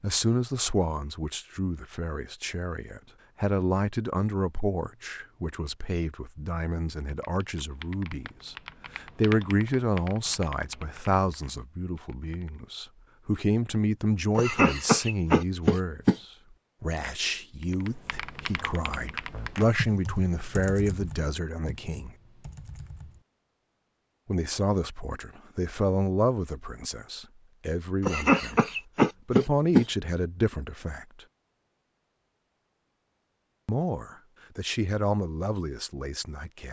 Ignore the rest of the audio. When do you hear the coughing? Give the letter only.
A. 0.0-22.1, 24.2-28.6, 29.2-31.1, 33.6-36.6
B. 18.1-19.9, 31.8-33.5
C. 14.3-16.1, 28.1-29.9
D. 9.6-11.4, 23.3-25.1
C.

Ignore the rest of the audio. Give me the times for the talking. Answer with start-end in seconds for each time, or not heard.
0.0-22.1, 24.2-28.6, 29.2-31.1, 33.6-36.6.